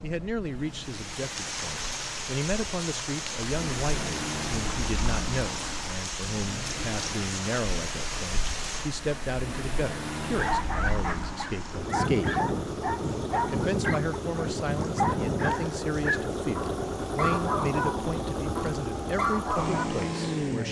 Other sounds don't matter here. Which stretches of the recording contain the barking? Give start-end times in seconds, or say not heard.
10.2-19.9.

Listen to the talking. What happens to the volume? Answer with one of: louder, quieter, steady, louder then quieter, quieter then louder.
steady.